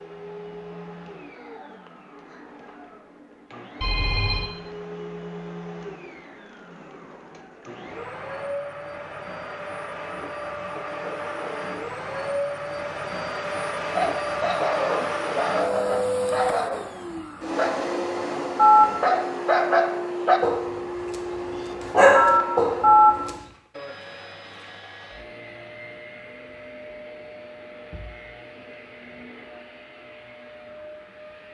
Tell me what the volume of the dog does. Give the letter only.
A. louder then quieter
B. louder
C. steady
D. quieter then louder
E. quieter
B.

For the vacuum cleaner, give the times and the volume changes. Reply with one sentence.
The vacuum cleaner can be heard from 0.0 to 31.4 s, getting louder then quieter.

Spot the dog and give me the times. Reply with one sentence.
You can hear the dog from 13.9 to 23.3 s.